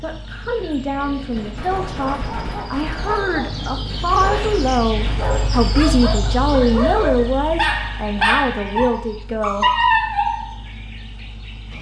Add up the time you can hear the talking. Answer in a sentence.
You can hear the talking for 10 seconds altogether.